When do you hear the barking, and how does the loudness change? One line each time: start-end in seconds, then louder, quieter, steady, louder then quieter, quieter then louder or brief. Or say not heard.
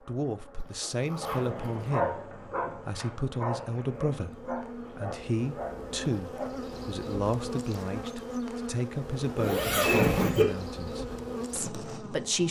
1.2-6.7 quieter.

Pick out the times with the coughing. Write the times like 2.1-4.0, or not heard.
not heard.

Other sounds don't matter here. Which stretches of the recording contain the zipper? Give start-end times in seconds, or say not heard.
0.8-1.6, 9.3-10.4.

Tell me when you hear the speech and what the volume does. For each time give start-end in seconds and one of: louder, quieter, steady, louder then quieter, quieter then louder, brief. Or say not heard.
0.1-12.4 quieter.